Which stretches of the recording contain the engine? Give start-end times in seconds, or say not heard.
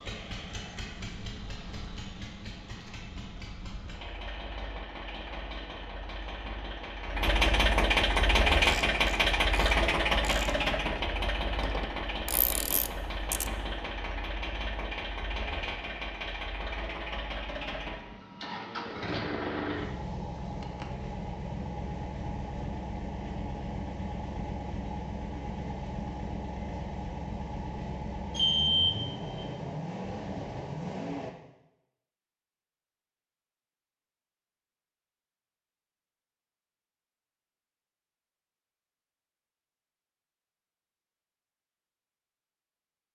0.0-31.3.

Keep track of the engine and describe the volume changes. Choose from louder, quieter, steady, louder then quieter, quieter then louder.
louder then quieter.